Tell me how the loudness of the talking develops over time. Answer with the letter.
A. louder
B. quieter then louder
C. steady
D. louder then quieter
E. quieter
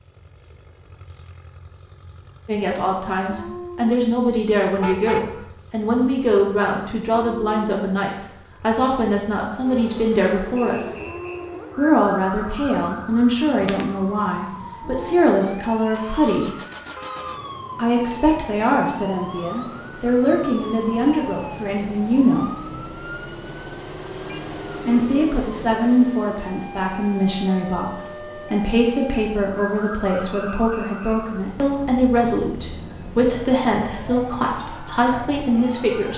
C.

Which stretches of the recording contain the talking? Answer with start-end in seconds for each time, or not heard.
2.5-10.9, 11.8-16.5, 17.8-22.5, 24.9-36.1.